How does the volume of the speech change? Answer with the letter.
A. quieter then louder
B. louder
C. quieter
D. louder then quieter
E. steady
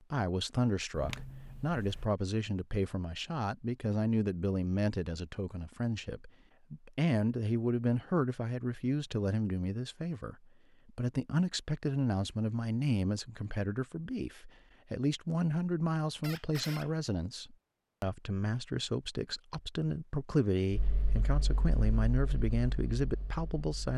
E.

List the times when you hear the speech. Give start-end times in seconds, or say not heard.
0.1-23.9.